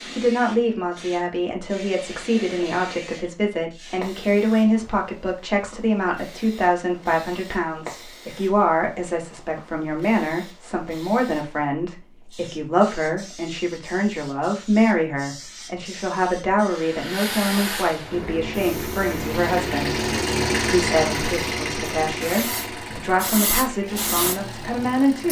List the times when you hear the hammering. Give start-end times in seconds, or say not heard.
not heard.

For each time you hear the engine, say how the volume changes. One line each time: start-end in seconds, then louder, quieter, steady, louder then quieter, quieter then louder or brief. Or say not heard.
18.1-25.2 louder then quieter.